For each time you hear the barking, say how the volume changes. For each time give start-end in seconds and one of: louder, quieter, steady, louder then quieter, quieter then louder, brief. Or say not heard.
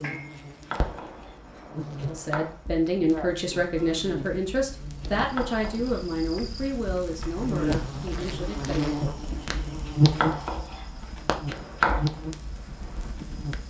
not heard.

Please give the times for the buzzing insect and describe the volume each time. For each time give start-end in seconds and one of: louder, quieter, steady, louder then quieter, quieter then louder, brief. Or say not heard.
0.0-13.6 louder then quieter.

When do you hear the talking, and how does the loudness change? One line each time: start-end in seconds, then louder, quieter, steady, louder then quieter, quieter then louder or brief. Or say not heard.
2.0-8.9 quieter.